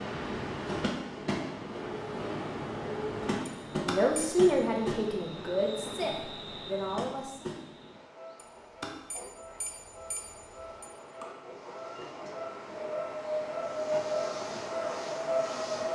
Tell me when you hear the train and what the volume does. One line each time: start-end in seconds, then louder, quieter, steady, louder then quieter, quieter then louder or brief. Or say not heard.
0.0-15.8 quieter then louder.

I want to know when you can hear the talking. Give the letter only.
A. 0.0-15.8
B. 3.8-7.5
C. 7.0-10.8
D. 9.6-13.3
B.